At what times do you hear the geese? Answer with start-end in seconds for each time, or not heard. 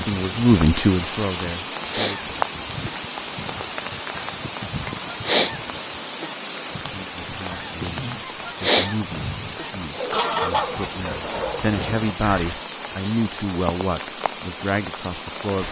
1.9-12.6.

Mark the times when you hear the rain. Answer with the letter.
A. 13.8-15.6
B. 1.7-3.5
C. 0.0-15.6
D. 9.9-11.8
C.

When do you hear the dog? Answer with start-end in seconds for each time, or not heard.
9.9-11.8.